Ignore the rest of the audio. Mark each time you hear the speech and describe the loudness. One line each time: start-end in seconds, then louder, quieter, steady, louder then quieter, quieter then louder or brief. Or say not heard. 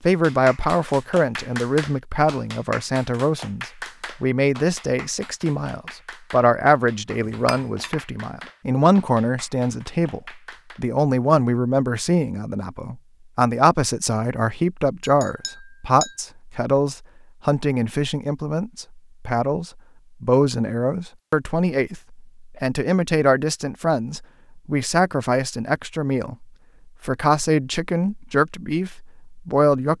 0.0-26.4 steady
27.1-29.9 brief.